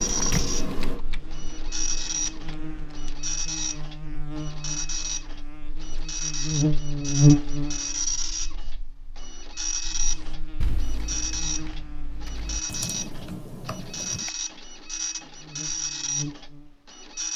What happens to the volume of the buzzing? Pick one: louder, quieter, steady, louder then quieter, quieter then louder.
louder then quieter.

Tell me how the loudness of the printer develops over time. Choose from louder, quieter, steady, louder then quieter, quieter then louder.
steady.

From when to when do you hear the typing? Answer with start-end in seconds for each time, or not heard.
0.0-3.1, 10.0-14.3.